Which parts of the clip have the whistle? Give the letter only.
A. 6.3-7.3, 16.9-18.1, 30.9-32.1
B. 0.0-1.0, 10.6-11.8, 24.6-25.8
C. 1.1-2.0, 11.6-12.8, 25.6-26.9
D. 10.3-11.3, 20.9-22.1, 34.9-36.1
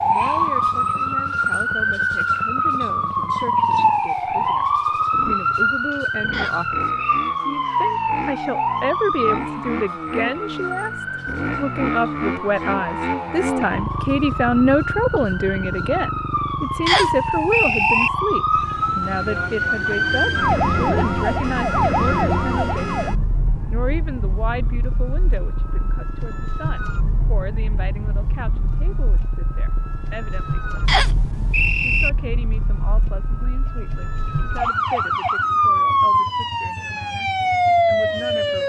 A.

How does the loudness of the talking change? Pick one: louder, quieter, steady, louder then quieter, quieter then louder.
louder then quieter.